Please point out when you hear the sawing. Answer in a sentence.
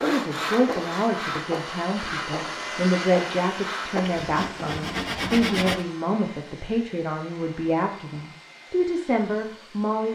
The sawing can be heard from 0.0 to 5.8 s.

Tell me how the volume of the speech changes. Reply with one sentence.
The loudness of the speech stays about the same.